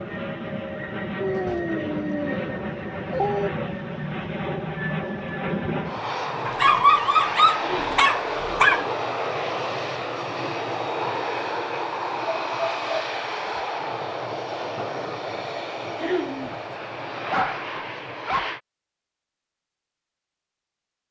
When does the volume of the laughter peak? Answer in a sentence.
The loudest moment of the laughter is at 16 seconds.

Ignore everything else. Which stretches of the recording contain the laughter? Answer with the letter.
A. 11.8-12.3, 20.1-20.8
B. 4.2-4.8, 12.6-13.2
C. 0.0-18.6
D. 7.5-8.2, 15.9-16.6
D.